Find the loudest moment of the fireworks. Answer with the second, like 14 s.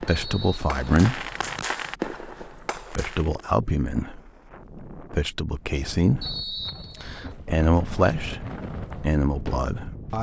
2 s.